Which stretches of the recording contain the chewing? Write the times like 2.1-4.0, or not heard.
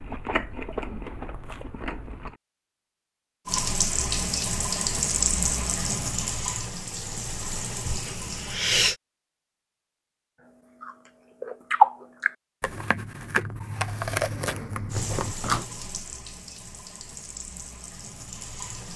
0.0-2.4, 10.8-15.6.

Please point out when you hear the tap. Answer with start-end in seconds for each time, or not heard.
3.5-8.9, 14.9-18.9.